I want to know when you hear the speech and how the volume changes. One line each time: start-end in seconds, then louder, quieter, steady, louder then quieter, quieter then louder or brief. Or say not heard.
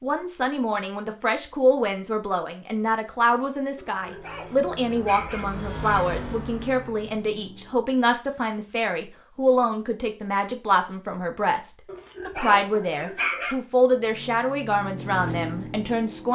0.0-16.3 steady.